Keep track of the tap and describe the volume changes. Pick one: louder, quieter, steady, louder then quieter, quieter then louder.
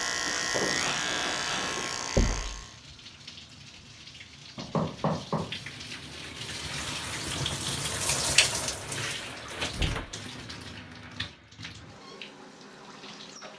louder then quieter.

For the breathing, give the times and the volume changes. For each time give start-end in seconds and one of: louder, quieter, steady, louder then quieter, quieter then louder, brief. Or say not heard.
not heard.